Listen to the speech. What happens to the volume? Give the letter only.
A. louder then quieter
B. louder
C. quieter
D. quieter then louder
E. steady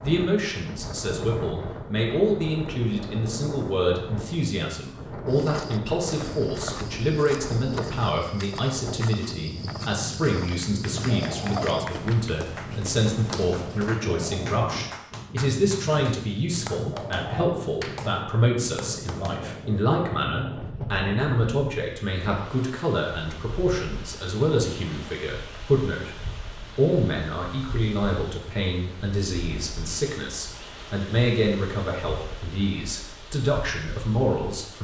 E.